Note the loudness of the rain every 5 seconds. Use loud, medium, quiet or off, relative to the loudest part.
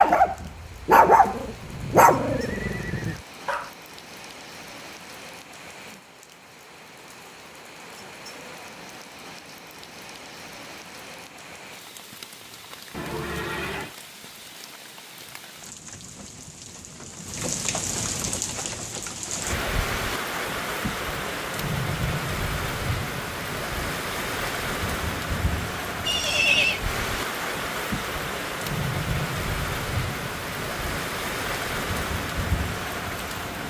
quiet, quiet, quiet, loud, loud, loud, loud.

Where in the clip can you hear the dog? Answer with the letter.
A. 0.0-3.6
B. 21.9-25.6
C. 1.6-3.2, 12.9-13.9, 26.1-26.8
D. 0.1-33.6
A.